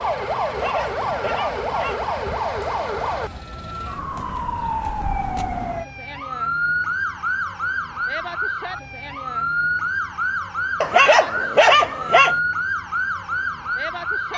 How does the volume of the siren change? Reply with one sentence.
The volume of the siren stays about the same.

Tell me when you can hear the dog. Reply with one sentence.
The dog can be heard from 0.5 to 2.0 s and from 10.8 to 12.3 s.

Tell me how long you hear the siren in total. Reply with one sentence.
The siren can be heard for 14 seconds in total.